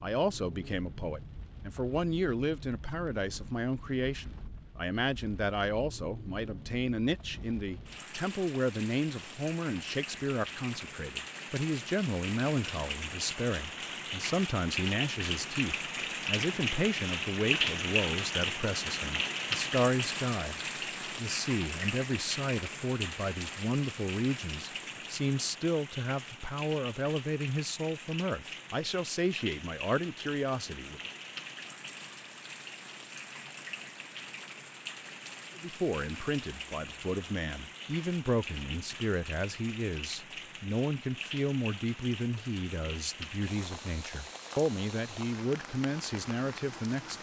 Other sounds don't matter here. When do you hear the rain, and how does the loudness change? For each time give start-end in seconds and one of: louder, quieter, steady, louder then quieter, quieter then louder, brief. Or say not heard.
0.0-47.1 louder then quieter.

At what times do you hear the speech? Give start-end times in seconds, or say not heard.
0.0-31.0, 35.5-47.1.